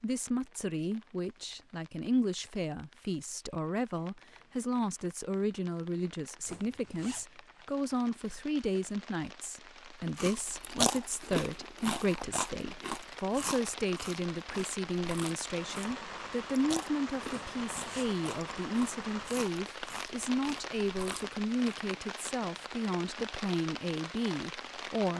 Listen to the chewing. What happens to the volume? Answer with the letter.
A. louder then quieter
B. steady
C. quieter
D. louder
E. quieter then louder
C.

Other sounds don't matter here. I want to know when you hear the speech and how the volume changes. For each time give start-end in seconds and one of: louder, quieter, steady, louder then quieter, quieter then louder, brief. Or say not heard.
0.0-25.1 steady.